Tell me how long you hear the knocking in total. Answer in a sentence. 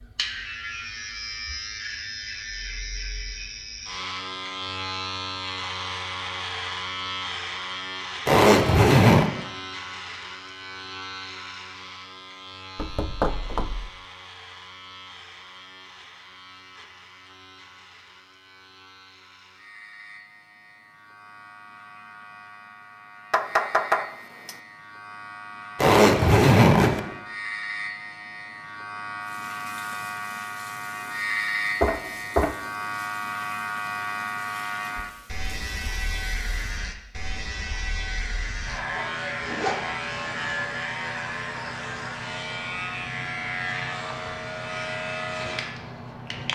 You can hear the knocking for 3 seconds altogether.